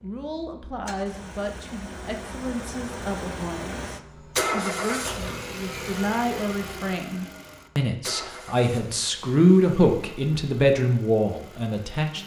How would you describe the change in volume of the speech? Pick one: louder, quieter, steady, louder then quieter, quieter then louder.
louder.